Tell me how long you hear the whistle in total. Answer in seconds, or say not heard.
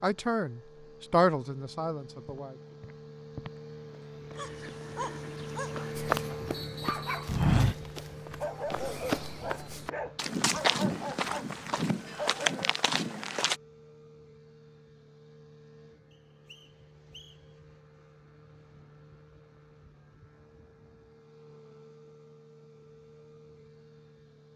2 s.